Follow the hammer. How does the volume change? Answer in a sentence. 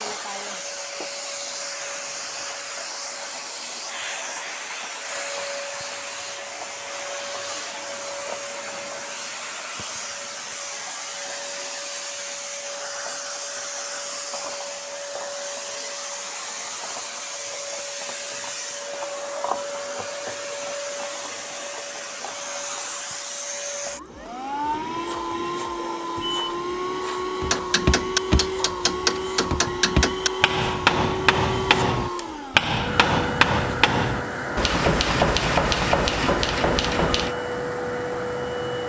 The volume of the hammer stays about the same.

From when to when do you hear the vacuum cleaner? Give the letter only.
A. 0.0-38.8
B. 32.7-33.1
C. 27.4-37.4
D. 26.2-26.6
A.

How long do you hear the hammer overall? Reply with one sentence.
You can hear the hammer for 10 seconds altogether.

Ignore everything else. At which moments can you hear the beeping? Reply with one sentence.
You can hear the beeping from 26.2 to 26.6 s.